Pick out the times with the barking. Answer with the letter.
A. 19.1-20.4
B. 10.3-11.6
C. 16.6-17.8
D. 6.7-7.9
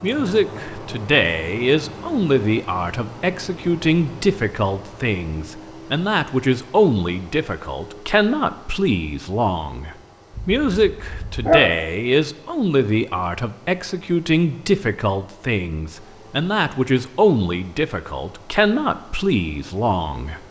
B.